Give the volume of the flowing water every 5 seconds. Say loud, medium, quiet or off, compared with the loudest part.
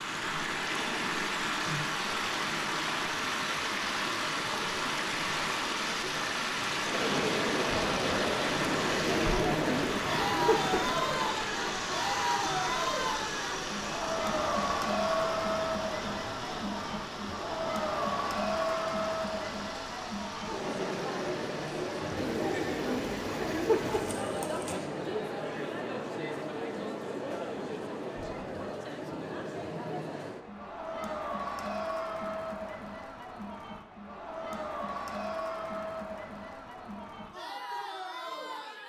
loud, loud, loud, medium, quiet, off, off, off.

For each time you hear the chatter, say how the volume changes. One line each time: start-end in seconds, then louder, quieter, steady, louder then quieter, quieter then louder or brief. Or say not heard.
6.8-38.8 quieter.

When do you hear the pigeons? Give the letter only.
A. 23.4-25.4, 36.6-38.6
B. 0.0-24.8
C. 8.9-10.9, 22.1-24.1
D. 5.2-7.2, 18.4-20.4
C.